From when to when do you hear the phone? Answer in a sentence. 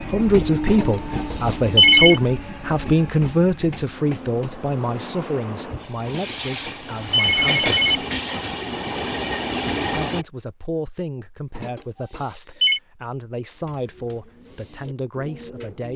The phone can be heard from 0.7 to 2.2 s, from 6.0 to 8.0 s and from 11.6 to 12.8 s.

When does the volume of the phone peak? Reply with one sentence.
The volume of the phone peaks at 2 seconds.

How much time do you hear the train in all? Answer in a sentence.
The train can be heard for 10 seconds in total.